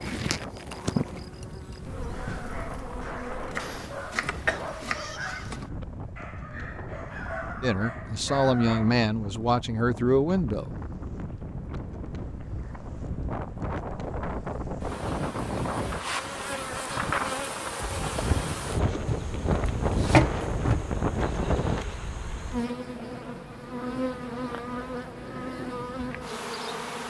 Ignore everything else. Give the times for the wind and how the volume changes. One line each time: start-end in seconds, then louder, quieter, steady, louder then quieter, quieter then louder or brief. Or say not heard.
0.0-21.9 louder.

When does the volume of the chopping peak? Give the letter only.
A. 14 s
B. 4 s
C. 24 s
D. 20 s
D.